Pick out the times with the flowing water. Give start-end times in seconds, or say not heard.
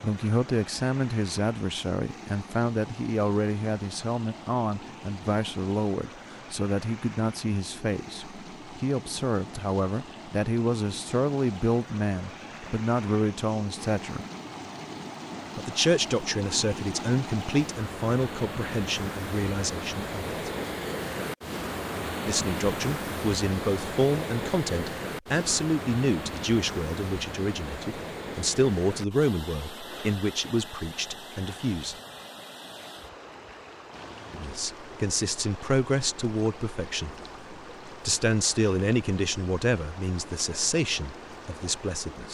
0.0-42.2.